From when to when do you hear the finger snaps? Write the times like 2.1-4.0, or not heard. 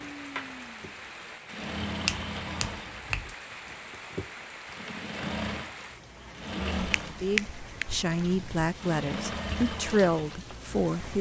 2.0-3.4, 6.8-8.7.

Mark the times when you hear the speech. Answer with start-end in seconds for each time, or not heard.
7.0-11.1.